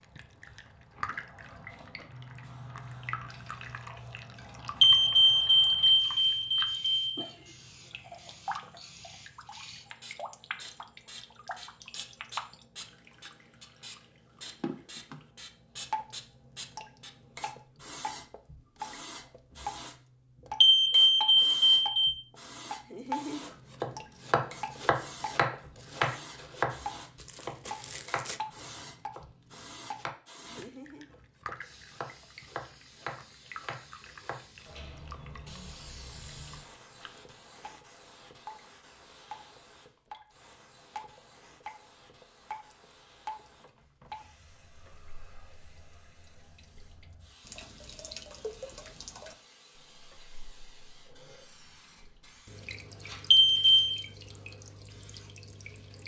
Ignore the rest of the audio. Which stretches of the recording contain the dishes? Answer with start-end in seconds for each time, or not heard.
not heard.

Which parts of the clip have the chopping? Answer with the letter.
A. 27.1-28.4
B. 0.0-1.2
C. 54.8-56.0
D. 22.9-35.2
D.